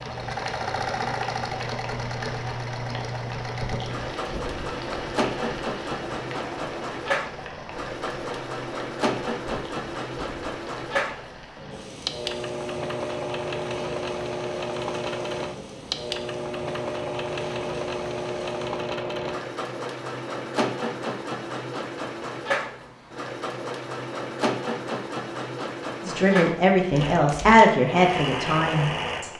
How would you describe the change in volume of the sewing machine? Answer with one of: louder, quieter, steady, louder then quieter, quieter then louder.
steady.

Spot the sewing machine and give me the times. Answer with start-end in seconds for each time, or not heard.
0.0-29.3.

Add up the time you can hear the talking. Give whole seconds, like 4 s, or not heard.
3 s.